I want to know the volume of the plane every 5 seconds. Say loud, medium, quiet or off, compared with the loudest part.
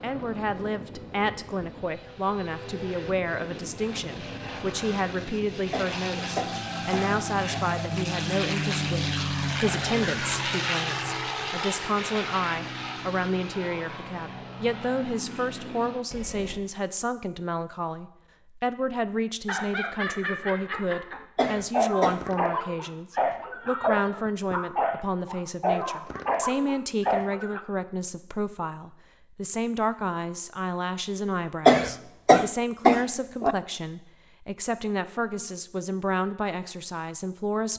medium, loud, loud, medium, off, off, off, off.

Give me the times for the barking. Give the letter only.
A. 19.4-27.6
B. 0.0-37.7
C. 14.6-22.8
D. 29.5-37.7
A.